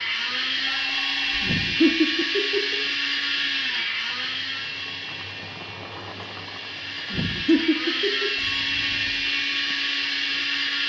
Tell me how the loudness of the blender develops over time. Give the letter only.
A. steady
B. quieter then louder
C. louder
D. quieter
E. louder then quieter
B.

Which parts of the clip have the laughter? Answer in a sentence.
The laughter can be heard from 1.4 to 2.8 s and from 7.1 to 8.3 s.